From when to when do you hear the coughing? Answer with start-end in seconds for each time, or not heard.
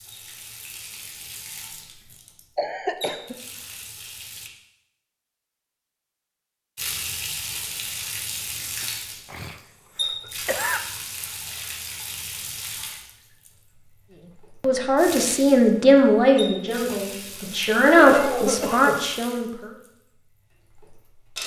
2.5-3.4, 9.3-10.8, 17.9-19.0.